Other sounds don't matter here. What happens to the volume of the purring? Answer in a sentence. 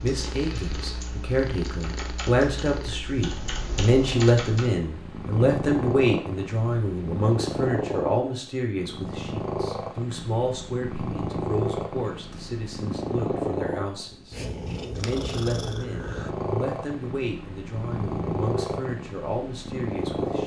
The volume of the purring goes up.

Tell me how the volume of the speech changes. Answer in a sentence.
The volume of the speech goes down.